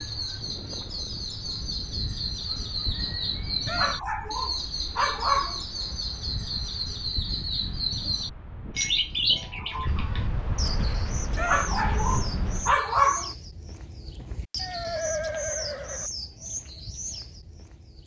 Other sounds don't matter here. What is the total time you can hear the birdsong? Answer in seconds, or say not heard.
18 s.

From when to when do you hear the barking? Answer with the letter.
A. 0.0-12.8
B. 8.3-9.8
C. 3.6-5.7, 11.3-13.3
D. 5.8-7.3
C.